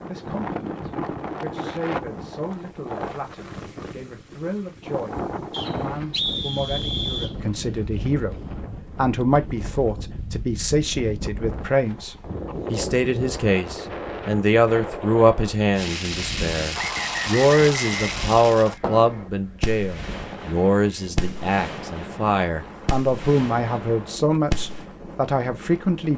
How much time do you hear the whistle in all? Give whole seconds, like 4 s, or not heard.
4 s.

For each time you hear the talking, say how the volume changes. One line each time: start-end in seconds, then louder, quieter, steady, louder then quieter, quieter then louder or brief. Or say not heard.
0.1-26.1 louder.